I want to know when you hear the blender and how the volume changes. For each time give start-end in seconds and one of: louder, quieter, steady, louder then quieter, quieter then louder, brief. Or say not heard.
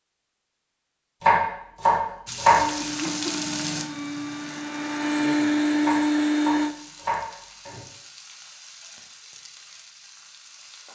2.5-6.8 louder.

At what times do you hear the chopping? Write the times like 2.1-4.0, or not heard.
1.2-2.6, 5.8-7.8.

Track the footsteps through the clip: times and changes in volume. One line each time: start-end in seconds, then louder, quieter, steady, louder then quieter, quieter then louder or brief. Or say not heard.
not heard.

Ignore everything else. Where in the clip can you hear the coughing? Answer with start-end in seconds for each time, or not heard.
2.8-3.4.